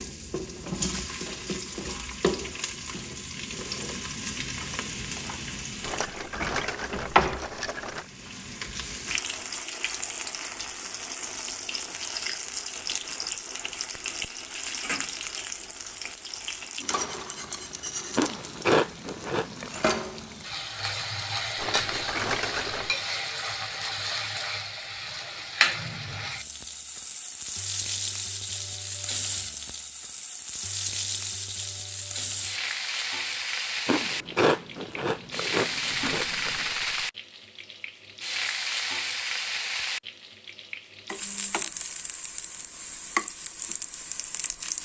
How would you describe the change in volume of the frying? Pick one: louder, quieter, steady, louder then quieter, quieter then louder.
steady.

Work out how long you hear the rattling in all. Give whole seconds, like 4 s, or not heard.
5 s.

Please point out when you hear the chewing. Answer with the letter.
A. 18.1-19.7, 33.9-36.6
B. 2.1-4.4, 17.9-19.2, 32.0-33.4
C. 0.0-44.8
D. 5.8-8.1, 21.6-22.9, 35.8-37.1
A.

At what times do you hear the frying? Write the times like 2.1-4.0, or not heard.
0.0-44.8.